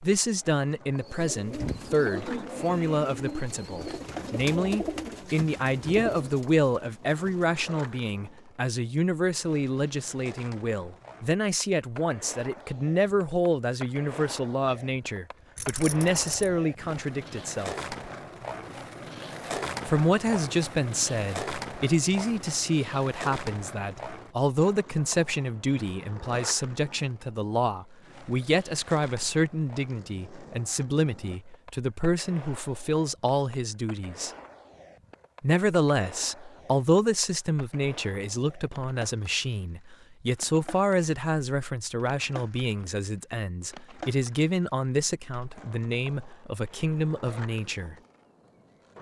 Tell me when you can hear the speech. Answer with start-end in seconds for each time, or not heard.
0.0-17.8, 19.9-34.3, 35.4-48.0.